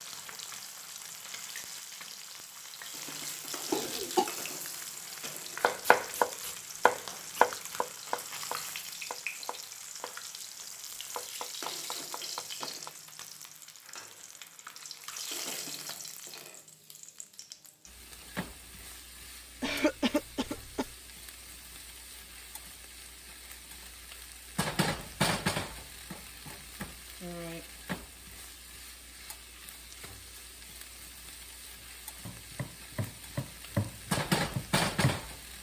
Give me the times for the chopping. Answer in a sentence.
The chopping can be heard from 5.6 to 12.9 s and from 32.2 to 35.5 s.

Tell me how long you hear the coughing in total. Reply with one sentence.
You can hear the coughing for 2 seconds altogether.